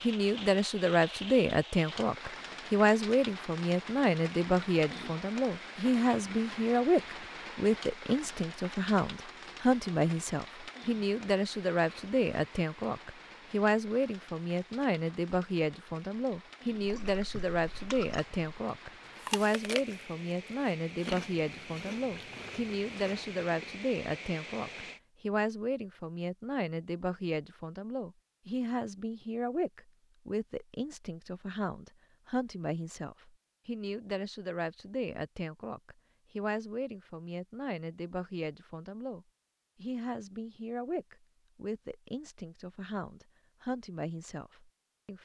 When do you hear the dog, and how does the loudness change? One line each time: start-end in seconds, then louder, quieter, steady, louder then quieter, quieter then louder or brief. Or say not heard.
not heard.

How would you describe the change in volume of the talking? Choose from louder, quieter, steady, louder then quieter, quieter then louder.
quieter.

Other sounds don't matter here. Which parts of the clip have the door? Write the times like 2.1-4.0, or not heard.
not heard.